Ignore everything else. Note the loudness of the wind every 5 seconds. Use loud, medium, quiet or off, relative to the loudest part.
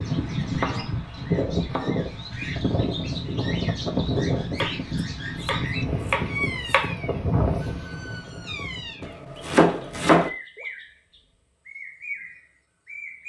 loud, loud, off.